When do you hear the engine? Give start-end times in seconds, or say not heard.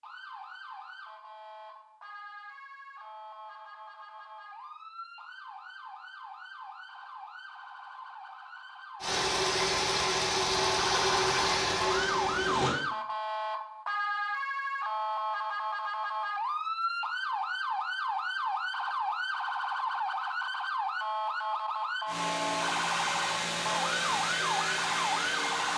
9.0-12.8, 22.1-25.7.